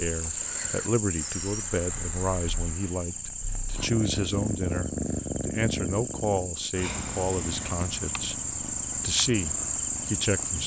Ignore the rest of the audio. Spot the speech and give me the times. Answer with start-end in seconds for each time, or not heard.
0.0-10.6.